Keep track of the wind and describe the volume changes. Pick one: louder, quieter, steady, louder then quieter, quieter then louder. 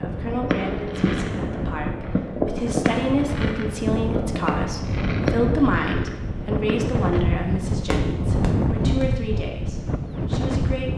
louder.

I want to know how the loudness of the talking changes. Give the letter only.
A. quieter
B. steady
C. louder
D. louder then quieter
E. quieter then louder
D.